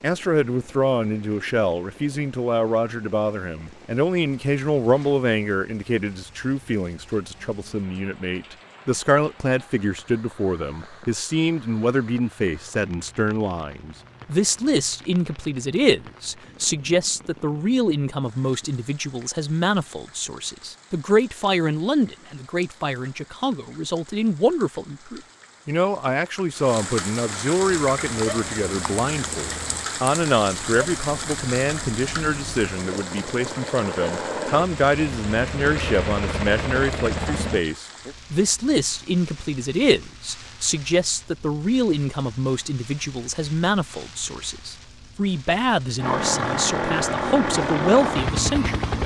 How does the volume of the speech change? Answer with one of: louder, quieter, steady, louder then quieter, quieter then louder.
steady.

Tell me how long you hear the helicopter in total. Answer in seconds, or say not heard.
13 s.